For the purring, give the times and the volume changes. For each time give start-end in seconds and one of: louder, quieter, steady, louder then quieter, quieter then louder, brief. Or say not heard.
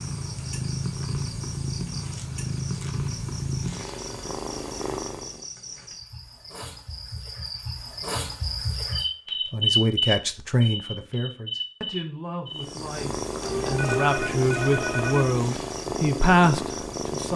0.0-5.5 steady
12.5-17.3 steady.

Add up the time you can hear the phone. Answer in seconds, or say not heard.
2 s.